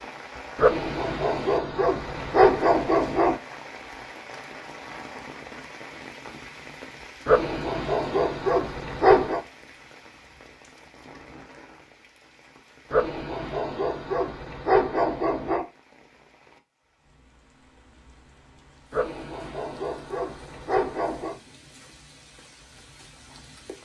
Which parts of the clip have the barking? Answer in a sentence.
The barking can be heard from 0.6 to 3.4 s, from 7.2 to 9.4 s, from 12.9 to 15.7 s and from 18.9 to 21.4 s.